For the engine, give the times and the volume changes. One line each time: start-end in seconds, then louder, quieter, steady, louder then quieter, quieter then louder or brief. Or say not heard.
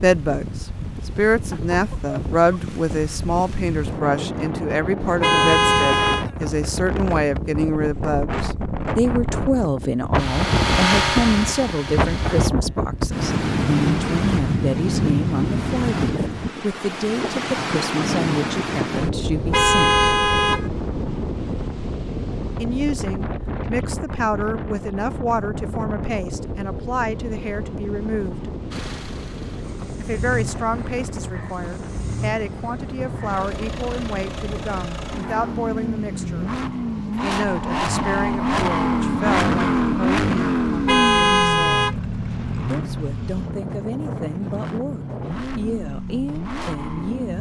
10.2-12.5 brief
28.7-47.3 louder then quieter.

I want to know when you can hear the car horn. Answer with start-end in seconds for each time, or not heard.
5.0-6.2, 19.3-20.7, 40.6-42.0.